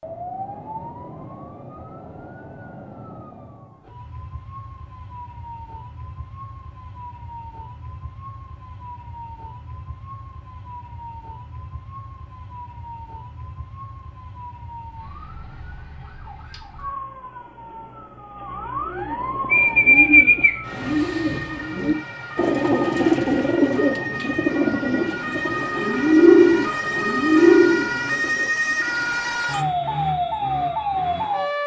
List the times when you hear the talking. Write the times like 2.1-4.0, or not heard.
not heard.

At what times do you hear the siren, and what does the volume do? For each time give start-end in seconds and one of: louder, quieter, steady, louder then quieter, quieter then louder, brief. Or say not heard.
0.0-31.6 louder.